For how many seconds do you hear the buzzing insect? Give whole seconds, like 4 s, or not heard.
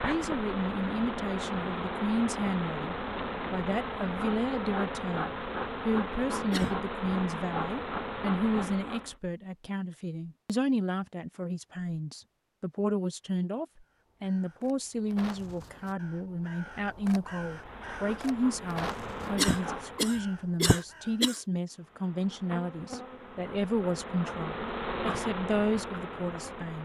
17 s.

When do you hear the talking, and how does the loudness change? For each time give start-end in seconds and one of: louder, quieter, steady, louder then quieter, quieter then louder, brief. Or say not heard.
0.0-26.8 steady.